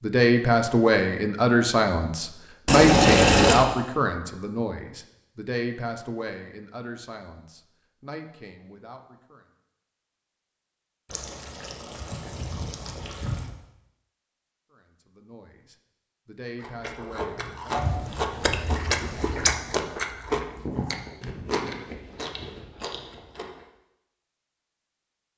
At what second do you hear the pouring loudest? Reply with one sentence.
The volume of the pouring peaks at 3 seconds.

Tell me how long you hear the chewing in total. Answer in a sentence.
The chewing can be heard for 7 seconds in total.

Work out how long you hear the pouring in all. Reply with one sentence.
You can hear the pouring for 5 seconds altogether.